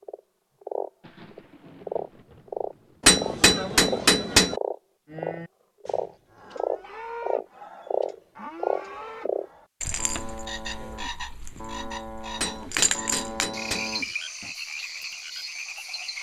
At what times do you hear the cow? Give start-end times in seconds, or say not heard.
5.0-14.6.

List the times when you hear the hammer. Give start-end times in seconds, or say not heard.
3.0-4.5, 12.3-13.9.